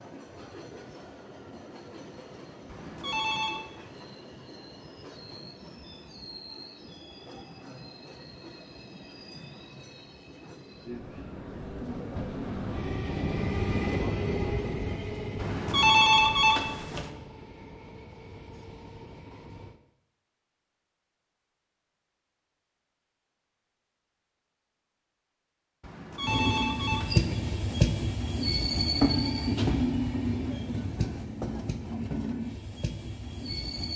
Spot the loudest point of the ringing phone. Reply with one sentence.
The volume of the ringing phone peaks at 16 seconds.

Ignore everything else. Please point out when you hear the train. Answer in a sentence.
You can hear the train from 0.0 to 19.8 s and from 26.2 to 33.9 s.